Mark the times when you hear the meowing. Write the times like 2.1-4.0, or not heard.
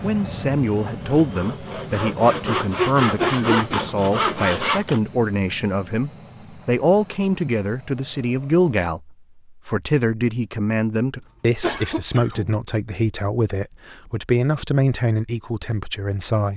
not heard.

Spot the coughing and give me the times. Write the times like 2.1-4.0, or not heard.
3.1-4.0, 11.6-12.6.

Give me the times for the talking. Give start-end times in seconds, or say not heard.
0.0-16.5.